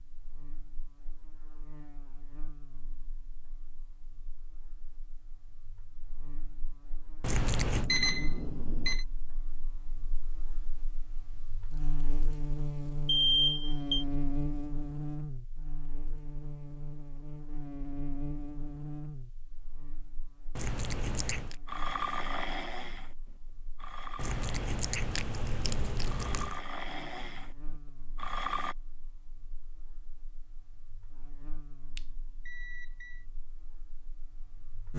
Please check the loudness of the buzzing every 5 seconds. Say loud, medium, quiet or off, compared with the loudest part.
quiet, quiet, loud, loud, quiet, quiet, quiet.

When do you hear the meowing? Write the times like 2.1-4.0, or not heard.
7.2-7.9, 20.6-21.6, 24.1-26.6.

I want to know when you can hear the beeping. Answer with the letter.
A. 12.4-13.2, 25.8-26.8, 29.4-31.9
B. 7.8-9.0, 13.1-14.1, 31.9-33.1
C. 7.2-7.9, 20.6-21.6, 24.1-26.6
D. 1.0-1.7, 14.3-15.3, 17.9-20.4
B.